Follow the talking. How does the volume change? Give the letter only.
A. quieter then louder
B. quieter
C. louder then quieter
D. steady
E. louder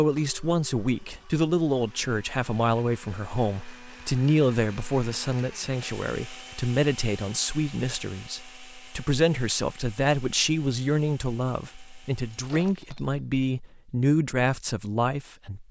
D.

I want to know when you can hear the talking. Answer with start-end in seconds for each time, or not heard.
0.0-15.6.